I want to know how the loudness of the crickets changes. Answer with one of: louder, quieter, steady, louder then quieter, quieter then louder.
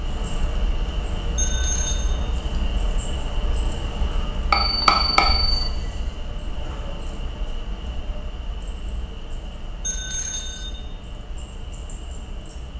quieter.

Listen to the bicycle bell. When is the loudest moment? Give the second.
5 s.